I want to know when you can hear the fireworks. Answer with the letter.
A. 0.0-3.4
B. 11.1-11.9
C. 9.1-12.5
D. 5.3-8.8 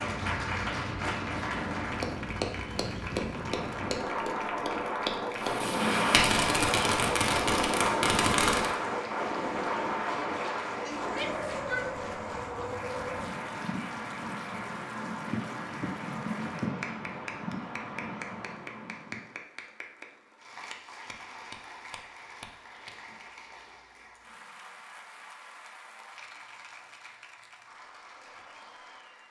D.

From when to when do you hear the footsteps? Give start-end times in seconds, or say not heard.
not heard.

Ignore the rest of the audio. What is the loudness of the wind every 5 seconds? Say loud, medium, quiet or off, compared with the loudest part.
medium, loud, medium, medium, off, off.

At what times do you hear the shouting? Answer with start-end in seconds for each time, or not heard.
11.1-11.9.